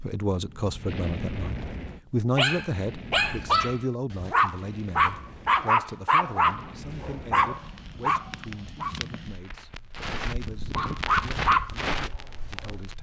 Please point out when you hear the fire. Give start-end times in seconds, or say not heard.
0.0-12.9.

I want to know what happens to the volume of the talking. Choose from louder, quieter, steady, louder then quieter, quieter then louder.
quieter.